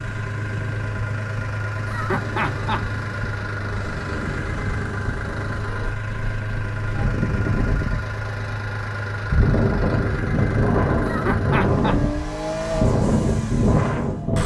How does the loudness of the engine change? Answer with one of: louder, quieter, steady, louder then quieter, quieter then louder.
steady.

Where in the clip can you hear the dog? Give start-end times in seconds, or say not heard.
not heard.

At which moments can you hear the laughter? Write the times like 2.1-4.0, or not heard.
1.9-2.9, 11.1-12.0.